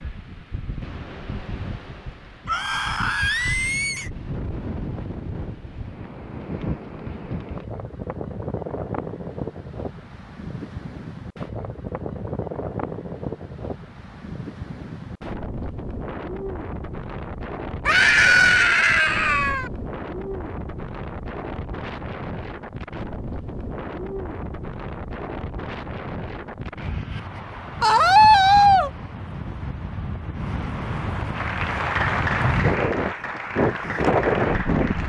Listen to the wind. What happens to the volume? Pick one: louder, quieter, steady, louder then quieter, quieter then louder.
louder.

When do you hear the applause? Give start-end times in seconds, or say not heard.
31.3-35.0.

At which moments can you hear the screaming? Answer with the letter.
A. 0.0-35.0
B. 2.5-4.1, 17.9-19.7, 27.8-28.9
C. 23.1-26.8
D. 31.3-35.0
B.